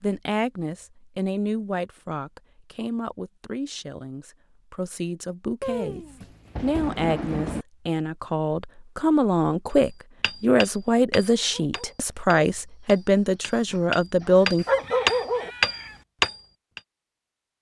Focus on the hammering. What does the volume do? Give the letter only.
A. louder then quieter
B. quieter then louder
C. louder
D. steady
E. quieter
B.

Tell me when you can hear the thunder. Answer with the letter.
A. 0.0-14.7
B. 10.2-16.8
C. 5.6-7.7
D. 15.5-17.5
C.